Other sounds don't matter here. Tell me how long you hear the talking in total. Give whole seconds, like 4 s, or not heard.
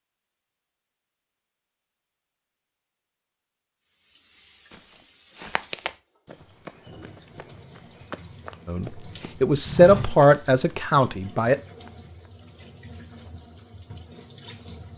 3 s.